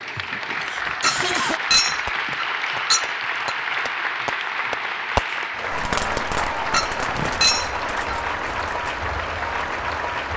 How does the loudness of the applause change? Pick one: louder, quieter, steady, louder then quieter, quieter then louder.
steady.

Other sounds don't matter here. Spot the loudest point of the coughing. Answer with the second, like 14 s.
1 s.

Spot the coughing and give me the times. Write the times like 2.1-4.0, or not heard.
0.1-1.6, 6.8-7.5.